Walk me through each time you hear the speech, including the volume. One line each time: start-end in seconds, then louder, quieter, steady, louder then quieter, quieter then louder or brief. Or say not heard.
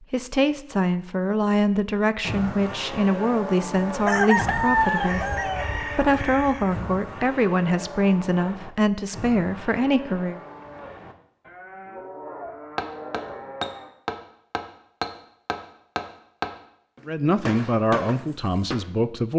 0.1-10.4 steady
17.1-19.3 brief.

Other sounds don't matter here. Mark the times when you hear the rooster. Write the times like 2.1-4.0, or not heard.
4.0-7.0.